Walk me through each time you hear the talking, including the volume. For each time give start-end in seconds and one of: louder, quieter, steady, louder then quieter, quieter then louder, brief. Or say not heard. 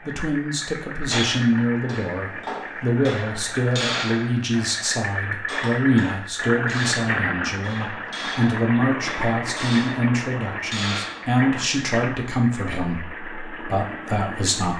0.1-14.7 steady.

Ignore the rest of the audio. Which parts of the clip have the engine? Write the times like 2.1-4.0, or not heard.
0.0-14.7.